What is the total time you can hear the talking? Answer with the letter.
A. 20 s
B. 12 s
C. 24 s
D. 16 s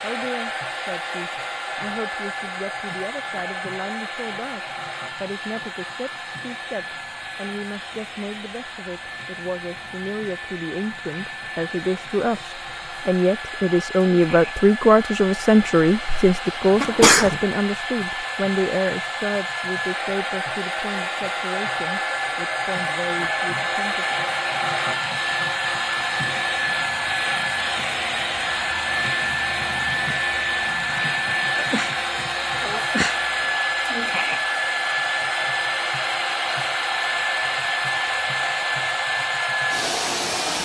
C.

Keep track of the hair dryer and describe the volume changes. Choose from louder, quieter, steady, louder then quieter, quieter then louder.
louder.